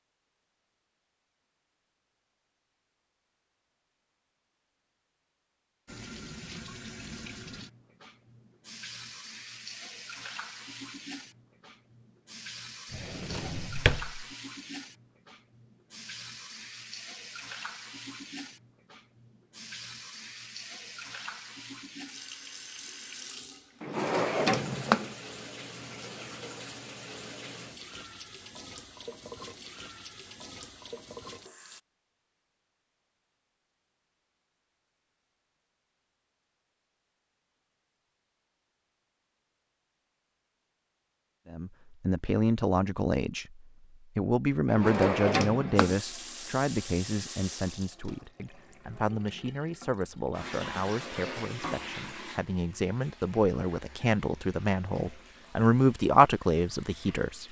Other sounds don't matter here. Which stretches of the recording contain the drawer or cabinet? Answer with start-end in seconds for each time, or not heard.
12.9-14.2, 23.8-25.1, 44.6-46.0.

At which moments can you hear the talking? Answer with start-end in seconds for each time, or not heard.
41.5-43.5, 44.1-57.4.